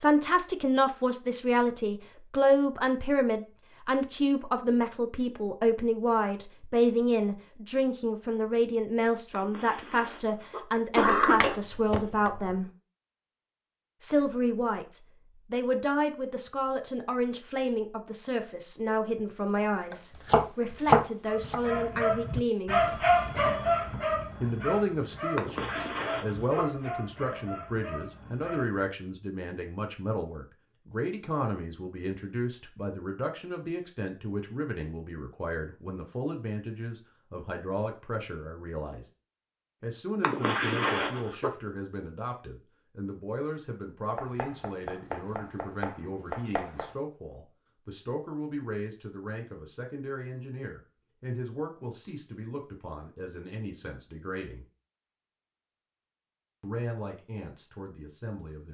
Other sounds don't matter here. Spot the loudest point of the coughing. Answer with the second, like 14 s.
11 s.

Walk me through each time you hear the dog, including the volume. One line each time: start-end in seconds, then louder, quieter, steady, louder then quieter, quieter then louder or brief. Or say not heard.
21.2-28.9 quieter.